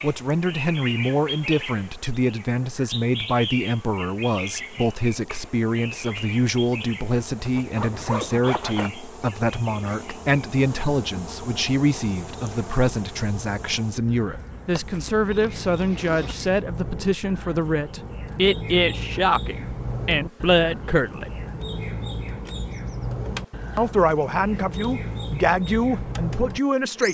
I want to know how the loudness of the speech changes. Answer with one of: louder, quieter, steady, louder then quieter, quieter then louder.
steady.